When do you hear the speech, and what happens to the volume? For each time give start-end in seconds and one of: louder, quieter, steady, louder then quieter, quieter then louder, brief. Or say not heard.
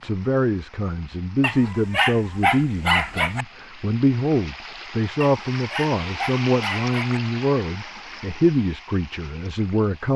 0.0-10.1 steady.